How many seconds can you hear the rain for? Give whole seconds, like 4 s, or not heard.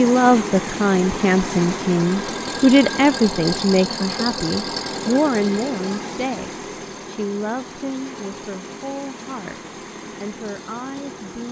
not heard.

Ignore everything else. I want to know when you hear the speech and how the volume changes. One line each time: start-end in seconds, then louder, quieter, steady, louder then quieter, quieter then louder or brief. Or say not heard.
0.0-11.4 quieter.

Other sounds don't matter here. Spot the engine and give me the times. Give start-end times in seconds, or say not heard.
0.0-11.4.